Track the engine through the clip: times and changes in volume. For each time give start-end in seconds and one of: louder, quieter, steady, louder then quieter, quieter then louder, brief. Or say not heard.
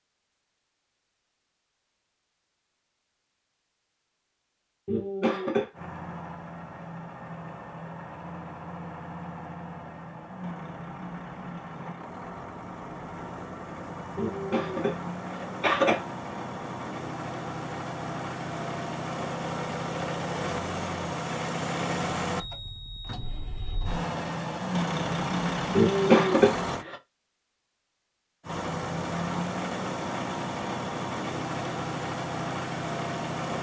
5.7-26.9 louder
28.4-33.5 steady.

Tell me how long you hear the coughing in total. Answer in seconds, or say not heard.
4 s.